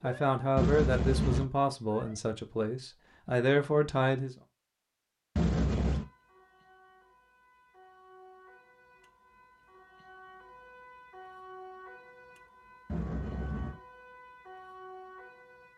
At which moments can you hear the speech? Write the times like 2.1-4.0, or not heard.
0.0-4.3.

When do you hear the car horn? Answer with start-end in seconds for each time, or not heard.
0.6-1.4, 5.3-6.0, 12.8-13.8.